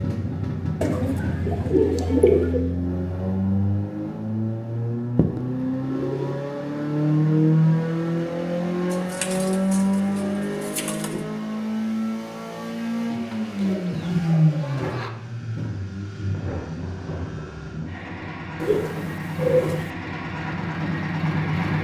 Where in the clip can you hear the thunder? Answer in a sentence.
You can hear the thunder from 16.3 to 18.3 s.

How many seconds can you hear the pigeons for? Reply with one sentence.
You can hear the pigeons for 9 seconds altogether.